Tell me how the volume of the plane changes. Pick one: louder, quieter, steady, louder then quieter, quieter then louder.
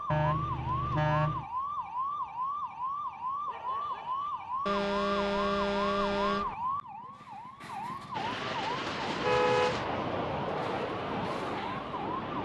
steady.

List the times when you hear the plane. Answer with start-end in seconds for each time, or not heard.
8.1-12.3.